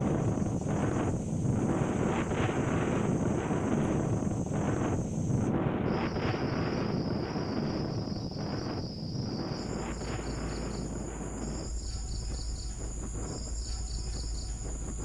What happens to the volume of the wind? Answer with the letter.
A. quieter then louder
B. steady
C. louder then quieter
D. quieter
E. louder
D.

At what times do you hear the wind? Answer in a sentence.
You can hear the wind from 0.0 to 14.9 s.